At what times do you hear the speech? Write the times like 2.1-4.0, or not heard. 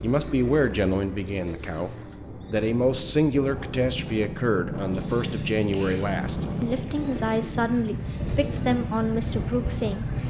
0.0-1.9, 2.5-10.1.